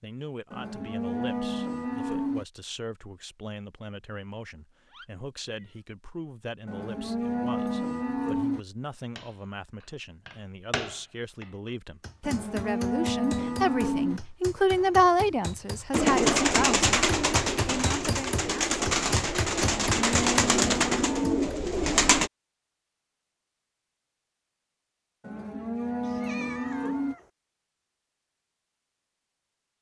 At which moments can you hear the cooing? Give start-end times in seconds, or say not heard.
15.9-22.3.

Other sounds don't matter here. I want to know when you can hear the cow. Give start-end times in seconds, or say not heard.
0.5-2.5, 6.7-8.6, 12.2-14.2, 19.8-21.5, 25.2-27.1.